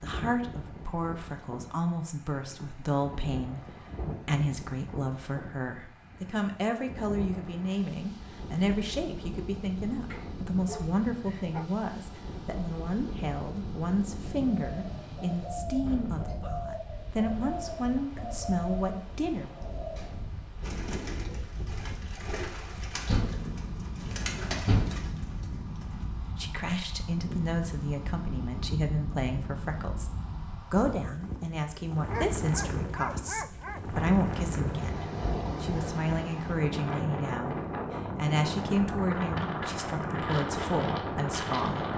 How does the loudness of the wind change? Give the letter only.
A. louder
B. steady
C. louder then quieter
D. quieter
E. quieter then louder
A.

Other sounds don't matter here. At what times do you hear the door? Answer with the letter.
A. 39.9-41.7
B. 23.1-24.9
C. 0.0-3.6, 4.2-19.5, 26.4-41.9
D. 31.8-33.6
B.